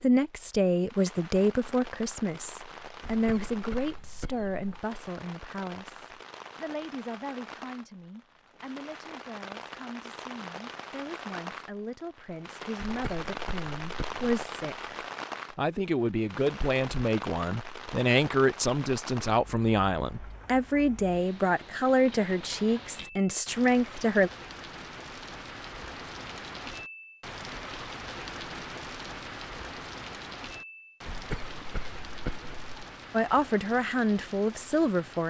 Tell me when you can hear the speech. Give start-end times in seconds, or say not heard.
0.0-24.3, 33.1-35.2.